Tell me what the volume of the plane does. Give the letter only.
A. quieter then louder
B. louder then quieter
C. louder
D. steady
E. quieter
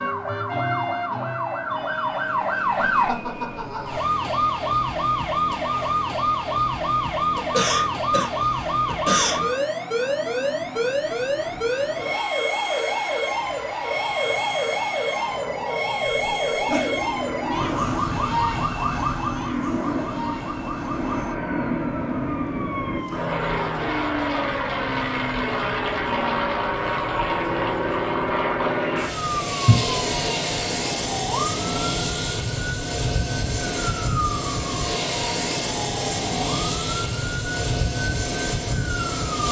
C.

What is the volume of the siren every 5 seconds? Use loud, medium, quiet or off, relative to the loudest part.
loud, loud, loud, loud, medium, medium, medium, medium.